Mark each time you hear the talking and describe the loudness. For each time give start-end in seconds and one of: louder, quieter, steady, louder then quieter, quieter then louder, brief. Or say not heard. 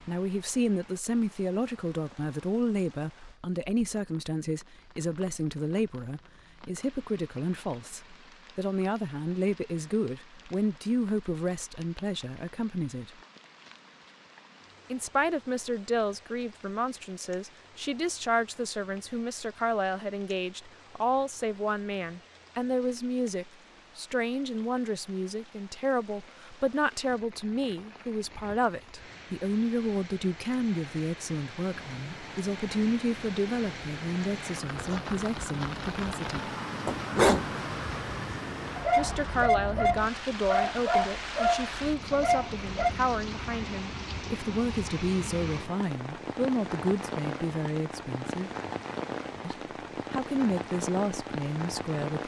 0.1-13.1 steady
14.9-36.5 steady
39.0-48.5 steady
49.4-52.2 brief.